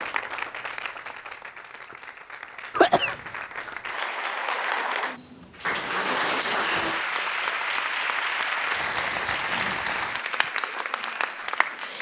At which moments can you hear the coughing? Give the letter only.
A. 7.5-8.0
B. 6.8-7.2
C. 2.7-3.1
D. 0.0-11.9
C.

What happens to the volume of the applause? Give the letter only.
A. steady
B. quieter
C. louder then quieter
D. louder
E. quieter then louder
D.